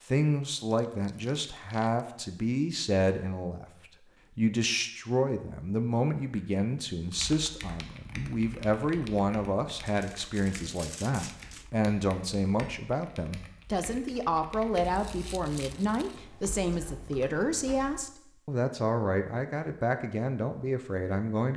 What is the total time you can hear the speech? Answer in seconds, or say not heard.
21 s.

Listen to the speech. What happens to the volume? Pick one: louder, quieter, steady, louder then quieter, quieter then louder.
steady.